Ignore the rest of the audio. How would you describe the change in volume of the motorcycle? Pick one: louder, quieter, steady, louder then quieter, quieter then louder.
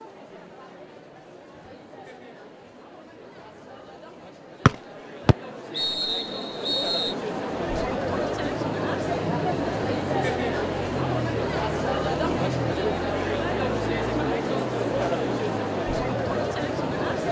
steady.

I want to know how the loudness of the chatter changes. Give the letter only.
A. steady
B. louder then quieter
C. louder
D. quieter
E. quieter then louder
C.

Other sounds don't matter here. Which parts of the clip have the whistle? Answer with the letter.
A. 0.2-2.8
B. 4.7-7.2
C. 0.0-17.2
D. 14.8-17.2
B.